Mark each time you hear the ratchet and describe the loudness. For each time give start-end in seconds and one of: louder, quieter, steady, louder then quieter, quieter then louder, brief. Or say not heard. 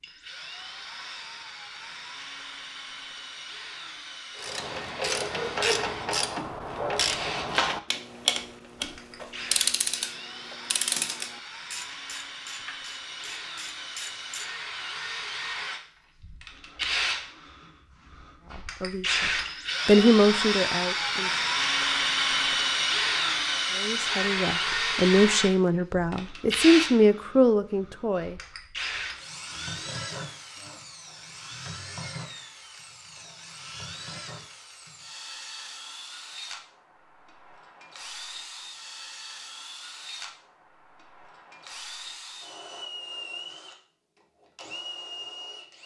4.3-14.5 quieter.